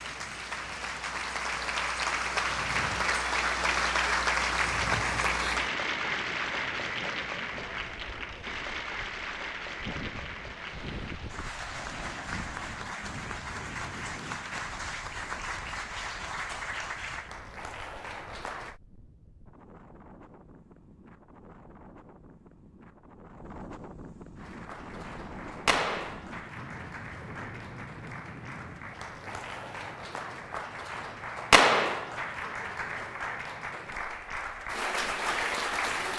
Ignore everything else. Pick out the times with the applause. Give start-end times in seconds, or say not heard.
0.0-18.8, 24.4-36.1.